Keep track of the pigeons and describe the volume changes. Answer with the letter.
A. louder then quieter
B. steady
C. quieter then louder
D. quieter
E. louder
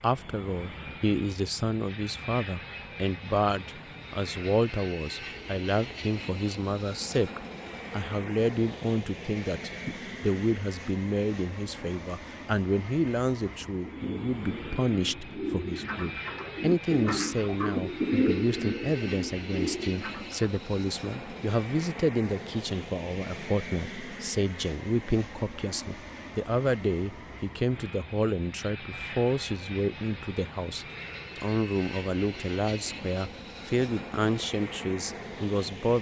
A.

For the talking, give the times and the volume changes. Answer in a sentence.
You can hear the talking from 0.0 to 35.9 s, at a steady volume.